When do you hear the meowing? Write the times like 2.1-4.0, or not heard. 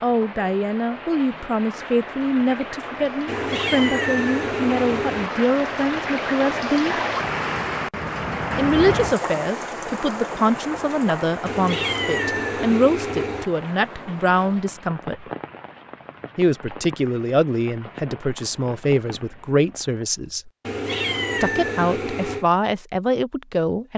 3.2-5.3, 11.4-13.4, 20.6-22.4.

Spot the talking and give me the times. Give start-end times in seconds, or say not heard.
0.0-7.0, 8.6-15.2, 16.4-20.5, 21.4-23.9.